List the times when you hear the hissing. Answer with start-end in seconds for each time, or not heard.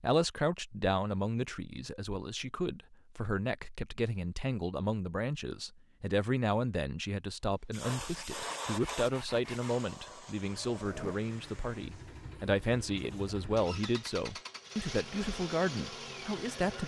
7.7-12.3.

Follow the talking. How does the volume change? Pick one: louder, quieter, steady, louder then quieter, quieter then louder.
steady.